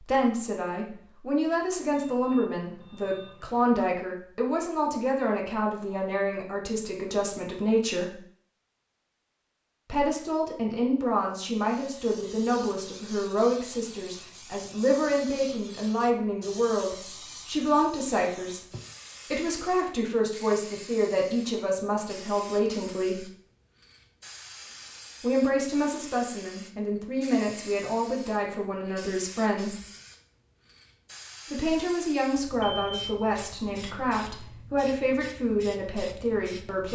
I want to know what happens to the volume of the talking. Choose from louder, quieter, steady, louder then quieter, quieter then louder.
steady.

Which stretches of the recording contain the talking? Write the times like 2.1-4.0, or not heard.
0.0-8.2, 9.9-18.6, 19.3-23.2, 25.2-29.8, 31.5-36.8.